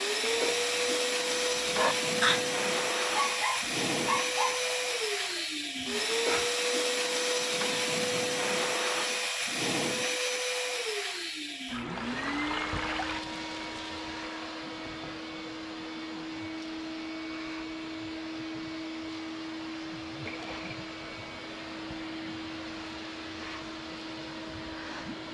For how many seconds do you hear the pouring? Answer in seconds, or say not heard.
3 s.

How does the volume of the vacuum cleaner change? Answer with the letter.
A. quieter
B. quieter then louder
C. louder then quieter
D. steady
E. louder
A.